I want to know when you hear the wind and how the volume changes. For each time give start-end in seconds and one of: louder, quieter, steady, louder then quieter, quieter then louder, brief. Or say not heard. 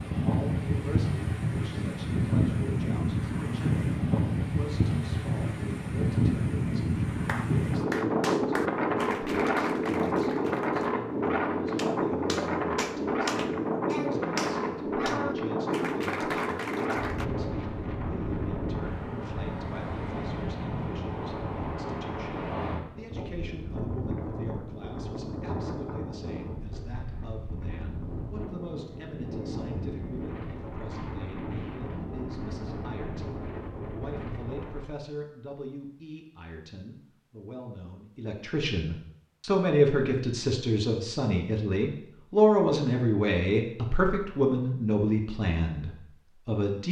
0.0-34.9 quieter.